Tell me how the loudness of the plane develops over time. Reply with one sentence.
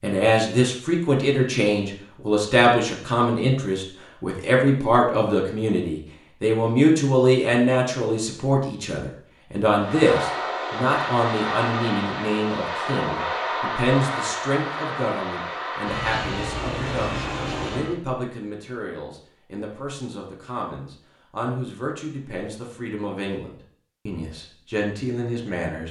The volume of the plane stays about the same.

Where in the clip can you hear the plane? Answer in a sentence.
You can hear the plane from 9.8 to 17.9 s.